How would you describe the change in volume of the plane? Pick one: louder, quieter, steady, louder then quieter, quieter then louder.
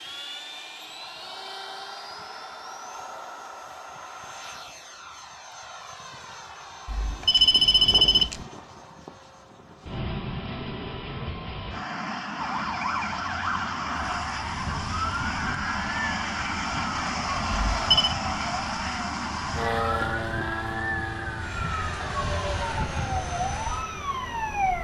louder.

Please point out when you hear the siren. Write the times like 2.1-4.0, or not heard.
12.3-24.7.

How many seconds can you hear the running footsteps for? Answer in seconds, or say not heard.
not heard.